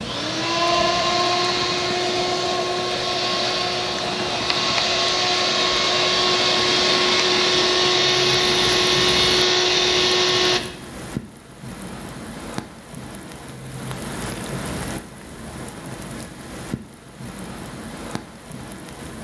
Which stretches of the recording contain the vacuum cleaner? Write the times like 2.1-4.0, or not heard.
0.0-10.6.